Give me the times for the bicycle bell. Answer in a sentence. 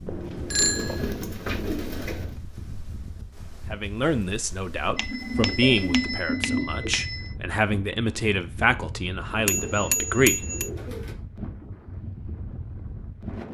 You can hear the bicycle bell from 0.1 to 1.2 s, from 5.0 to 7.3 s and from 9.4 to 10.7 s.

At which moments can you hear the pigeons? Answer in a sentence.
The pigeons can be heard from 0.6 to 2.4 s, from 4.8 to 6.9 s and from 9.4 to 11.2 s.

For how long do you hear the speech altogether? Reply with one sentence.
You can hear the speech for 7 seconds altogether.